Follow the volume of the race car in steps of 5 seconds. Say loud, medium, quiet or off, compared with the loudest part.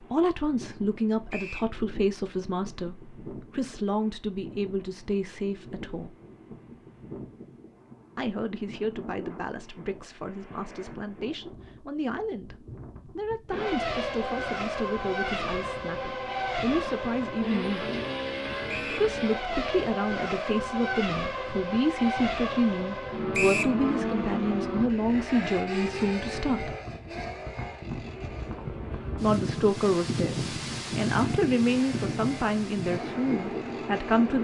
off, off, loud, loud, loud, medium, medium.